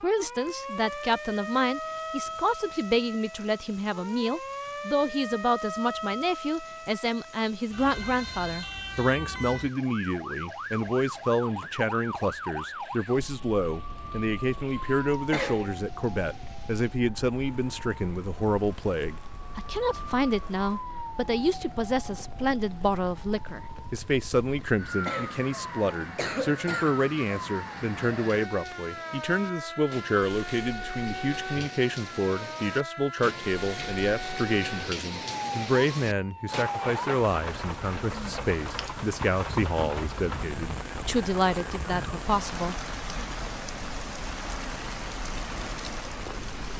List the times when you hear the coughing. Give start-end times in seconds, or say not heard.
15.3-15.8, 25.1-26.9.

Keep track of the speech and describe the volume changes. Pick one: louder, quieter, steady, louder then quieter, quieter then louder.
steady.